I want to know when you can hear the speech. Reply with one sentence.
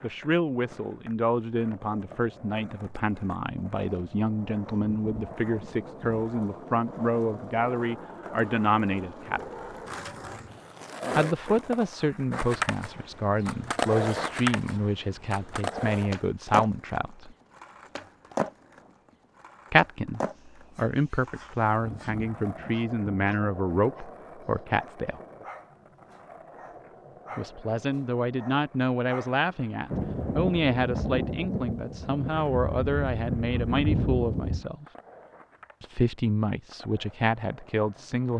You can hear the speech from 0.0 to 9.4 s, from 11.2 to 17.4 s, from 19.7 to 25.2 s, from 27.4 to 34.9 s and from 35.8 to 38.3 s.